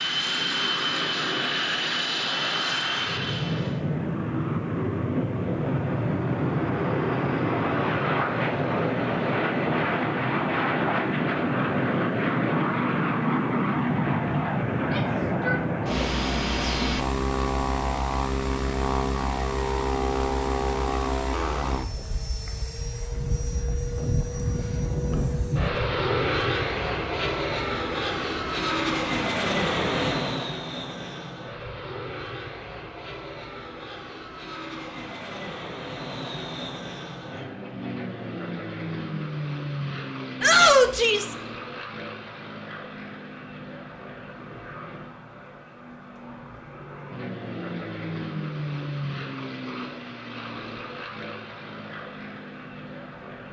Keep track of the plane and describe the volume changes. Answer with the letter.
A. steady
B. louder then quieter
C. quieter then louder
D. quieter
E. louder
D.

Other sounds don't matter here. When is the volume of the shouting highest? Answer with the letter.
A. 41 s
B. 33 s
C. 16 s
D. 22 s
A.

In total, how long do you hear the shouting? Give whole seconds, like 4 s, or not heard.
2 s.